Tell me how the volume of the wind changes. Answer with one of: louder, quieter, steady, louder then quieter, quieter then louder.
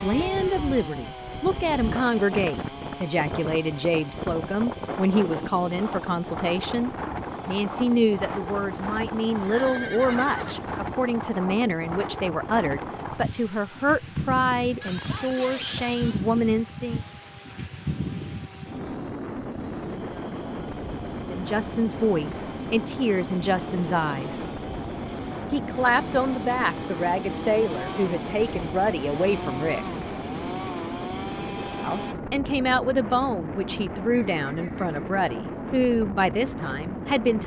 steady.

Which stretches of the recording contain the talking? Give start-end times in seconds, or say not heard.
0.0-17.0, 21.2-24.4, 25.5-29.9, 31.8-37.4.